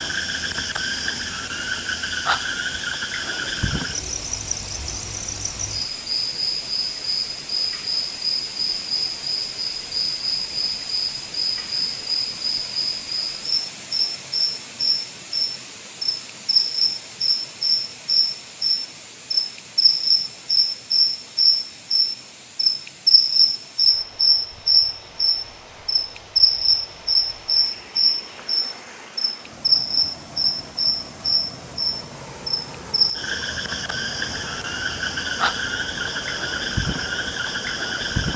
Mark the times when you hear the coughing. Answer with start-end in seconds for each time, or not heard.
not heard.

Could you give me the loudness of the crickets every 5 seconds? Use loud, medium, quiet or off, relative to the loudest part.
medium, medium, medium, loud, loud, loud, medium, medium.